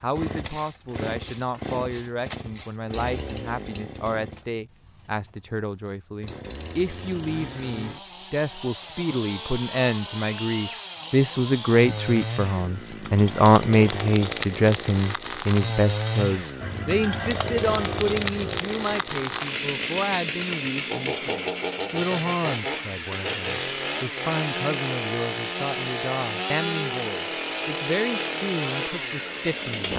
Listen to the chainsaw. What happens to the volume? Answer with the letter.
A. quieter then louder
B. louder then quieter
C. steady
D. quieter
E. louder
E.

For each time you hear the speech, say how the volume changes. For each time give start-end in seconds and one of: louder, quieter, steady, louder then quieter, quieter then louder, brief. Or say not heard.
0.0-29.9 louder then quieter.